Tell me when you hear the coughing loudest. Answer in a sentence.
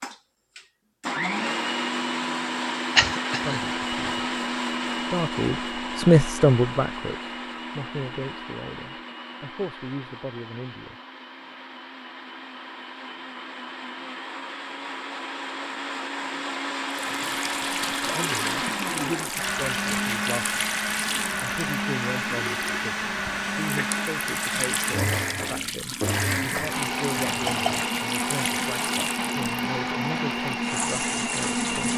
The loudest moment of the coughing is at 3 seconds.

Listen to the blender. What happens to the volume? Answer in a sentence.
The loudness of the blender goes down, then up.